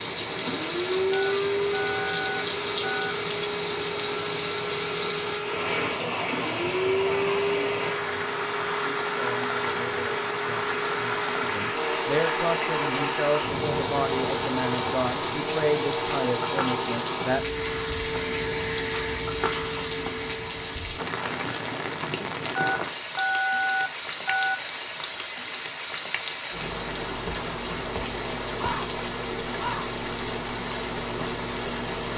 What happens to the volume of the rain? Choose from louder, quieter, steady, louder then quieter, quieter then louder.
steady.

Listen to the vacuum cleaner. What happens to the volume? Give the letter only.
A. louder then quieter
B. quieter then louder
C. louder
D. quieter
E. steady
E.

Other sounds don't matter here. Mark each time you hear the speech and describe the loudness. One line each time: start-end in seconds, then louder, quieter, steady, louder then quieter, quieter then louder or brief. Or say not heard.
8.8-17.4 louder.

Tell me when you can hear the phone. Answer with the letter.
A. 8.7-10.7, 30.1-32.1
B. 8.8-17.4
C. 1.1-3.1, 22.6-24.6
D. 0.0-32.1
C.